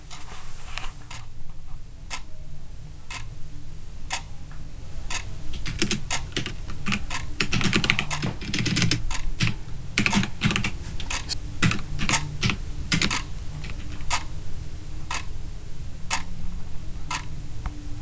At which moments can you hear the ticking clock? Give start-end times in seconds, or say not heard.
0.0-17.9.